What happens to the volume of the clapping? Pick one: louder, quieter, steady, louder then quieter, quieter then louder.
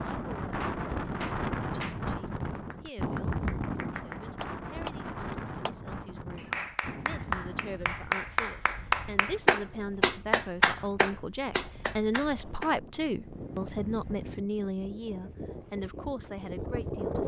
louder.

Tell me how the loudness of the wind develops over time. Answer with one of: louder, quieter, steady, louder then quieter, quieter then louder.
quieter then louder.